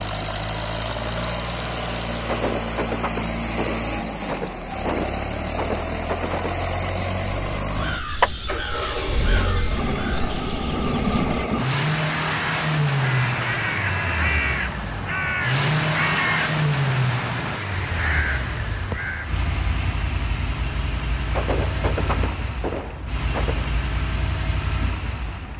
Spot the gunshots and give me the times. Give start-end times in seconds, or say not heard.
2.2-6.6, 21.4-23.8.